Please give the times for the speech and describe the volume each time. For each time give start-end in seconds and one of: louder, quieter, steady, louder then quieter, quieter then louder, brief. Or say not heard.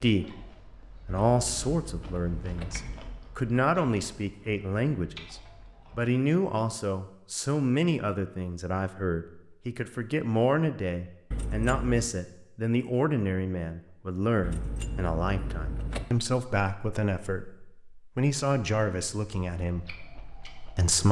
0.0-21.0 steady.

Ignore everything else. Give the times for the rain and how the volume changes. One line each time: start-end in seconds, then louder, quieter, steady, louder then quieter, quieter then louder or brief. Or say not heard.
not heard.